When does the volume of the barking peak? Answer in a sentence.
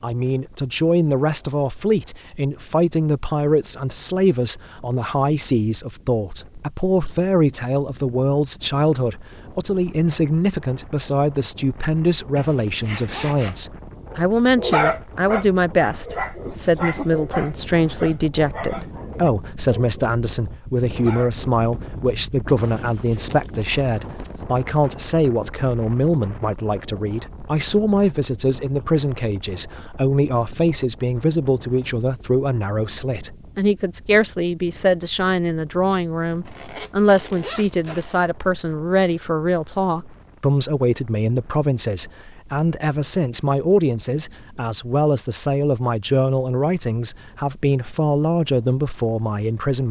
The loudest moment of the barking is at 15 seconds.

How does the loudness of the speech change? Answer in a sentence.
The loudness of the speech stays about the same.